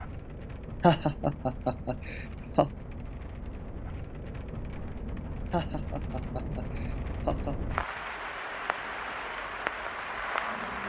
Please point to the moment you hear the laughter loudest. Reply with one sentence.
The volume of the laughter peaks at 1 second.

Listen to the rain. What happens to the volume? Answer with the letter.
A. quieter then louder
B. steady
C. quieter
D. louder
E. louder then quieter
D.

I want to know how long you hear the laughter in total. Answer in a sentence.
The laughter can be heard for 4 seconds in total.